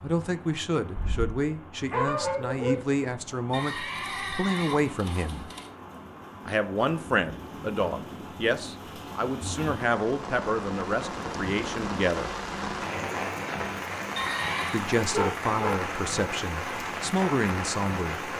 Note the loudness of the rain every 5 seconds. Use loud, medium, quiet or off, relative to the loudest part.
quiet, medium, loud, loud.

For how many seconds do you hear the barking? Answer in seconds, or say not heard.
3 s.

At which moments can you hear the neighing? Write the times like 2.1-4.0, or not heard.
3.5-5.7, 14.2-14.8.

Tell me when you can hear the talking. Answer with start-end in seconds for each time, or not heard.
0.0-5.5, 6.5-12.3, 14.7-18.2.